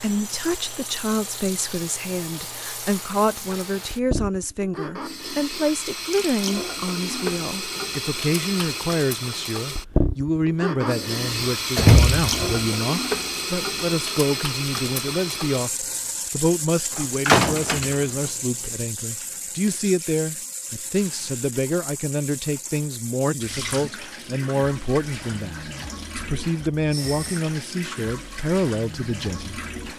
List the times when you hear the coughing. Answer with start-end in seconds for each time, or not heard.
not heard.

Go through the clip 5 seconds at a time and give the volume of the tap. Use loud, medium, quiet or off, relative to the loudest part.
medium, loud, loud, medium, medium, medium.